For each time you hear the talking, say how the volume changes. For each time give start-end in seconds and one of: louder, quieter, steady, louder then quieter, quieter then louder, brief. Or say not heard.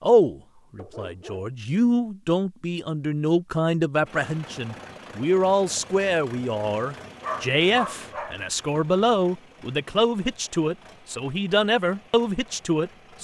0.0-13.1 steady.